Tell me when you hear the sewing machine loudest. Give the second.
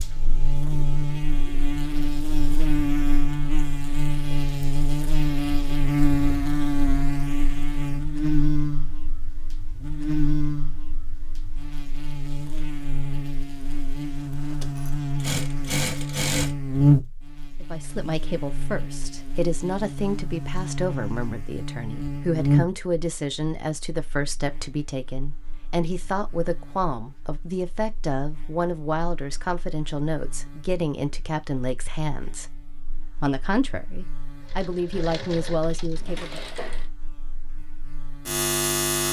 16 s.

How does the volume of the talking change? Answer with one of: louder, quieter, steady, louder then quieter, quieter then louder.
steady.